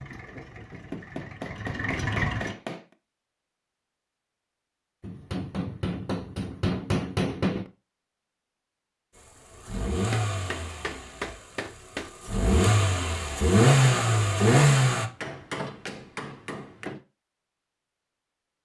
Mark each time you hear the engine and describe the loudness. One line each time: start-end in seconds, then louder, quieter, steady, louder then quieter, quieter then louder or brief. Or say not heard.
0.0-2.5 brief
9.2-15.1 quieter then louder.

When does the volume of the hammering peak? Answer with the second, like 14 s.
7 s.